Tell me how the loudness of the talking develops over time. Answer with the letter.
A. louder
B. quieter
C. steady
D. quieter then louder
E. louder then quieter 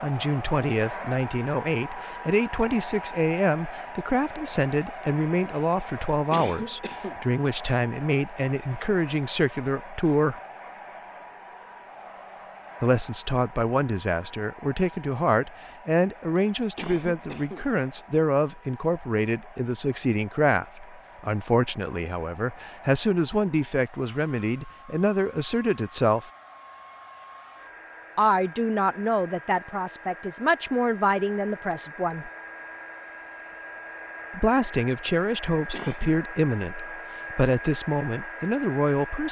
C.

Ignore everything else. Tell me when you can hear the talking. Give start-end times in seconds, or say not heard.
0.0-10.3, 12.8-26.3, 28.1-32.3, 34.3-39.2.